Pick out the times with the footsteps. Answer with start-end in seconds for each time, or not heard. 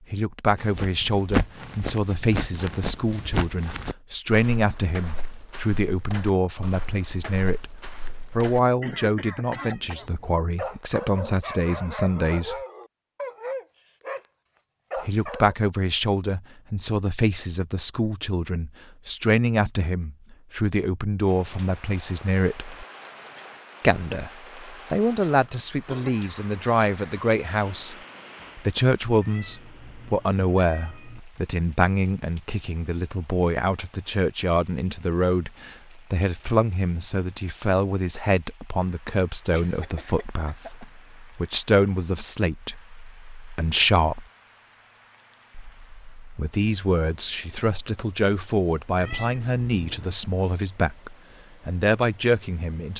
0.6-8.6.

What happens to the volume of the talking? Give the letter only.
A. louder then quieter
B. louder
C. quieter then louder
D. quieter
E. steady
E.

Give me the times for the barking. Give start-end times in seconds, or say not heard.
10.6-14.2, 14.9-15.6.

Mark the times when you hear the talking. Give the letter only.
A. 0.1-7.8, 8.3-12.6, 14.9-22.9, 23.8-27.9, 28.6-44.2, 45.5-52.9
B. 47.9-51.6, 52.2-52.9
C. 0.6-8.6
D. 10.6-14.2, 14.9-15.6
A.